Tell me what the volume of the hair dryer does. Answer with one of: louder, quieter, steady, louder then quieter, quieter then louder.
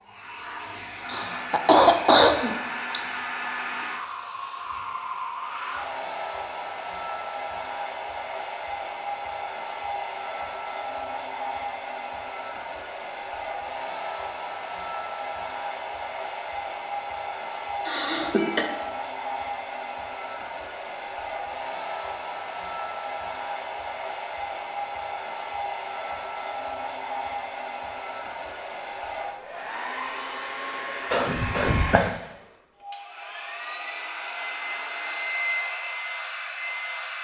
steady.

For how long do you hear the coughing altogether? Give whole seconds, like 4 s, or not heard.
4 s.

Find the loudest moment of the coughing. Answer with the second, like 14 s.
2 s.